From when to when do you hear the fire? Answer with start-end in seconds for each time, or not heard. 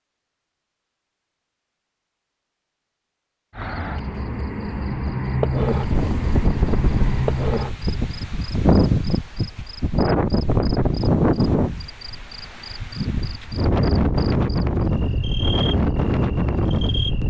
not heard.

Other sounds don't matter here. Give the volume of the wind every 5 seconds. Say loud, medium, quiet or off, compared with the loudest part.
off, loud, loud, loud.